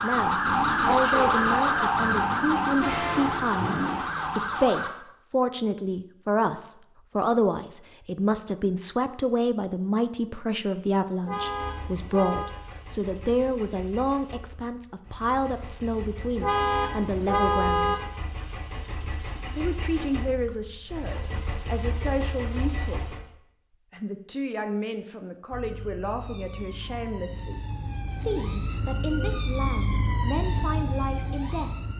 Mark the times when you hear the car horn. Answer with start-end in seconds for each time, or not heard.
11.2-12.5, 16.4-17.9.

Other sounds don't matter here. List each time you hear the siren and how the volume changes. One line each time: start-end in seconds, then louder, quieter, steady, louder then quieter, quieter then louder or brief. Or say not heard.
0.0-4.9 quieter
25.5-31.9 louder.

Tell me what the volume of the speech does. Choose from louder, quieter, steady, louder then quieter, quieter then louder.
quieter.